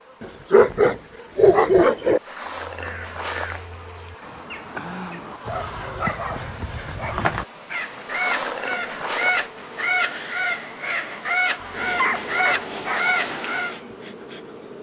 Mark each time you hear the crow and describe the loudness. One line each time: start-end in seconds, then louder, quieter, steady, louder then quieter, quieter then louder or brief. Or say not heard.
2.6-13.8 louder.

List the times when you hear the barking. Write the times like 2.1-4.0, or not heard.
0.2-2.2, 5.5-7.3, 11.8-13.1.